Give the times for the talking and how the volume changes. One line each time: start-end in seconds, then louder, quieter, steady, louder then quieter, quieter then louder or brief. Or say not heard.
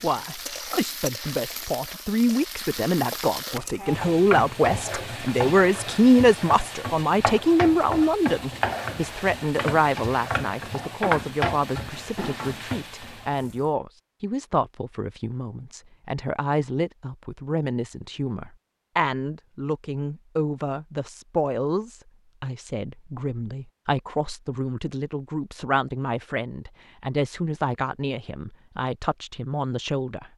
0.0-30.3 quieter.